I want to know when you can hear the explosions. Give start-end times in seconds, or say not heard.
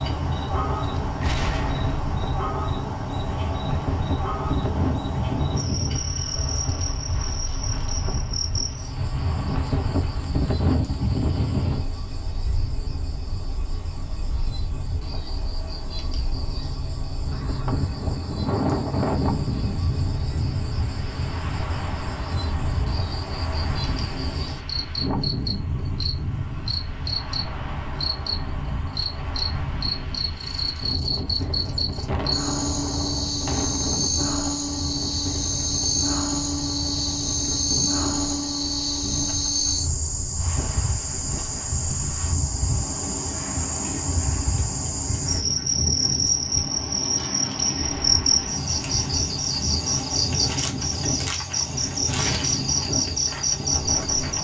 1.2-2.0, 32.0-34.1, 47.8-48.4.